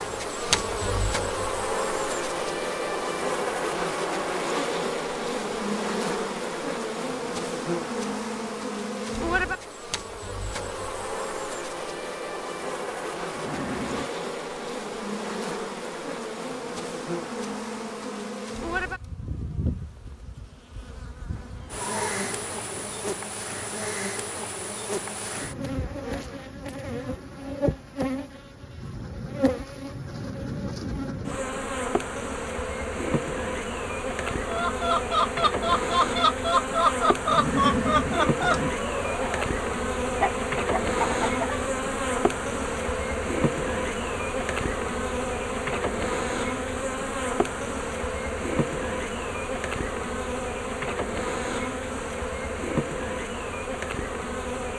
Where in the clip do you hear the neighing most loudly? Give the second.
38 s.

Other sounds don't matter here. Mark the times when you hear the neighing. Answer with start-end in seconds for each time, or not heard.
13.3-14.1, 21.4-23.1, 37.2-38.8.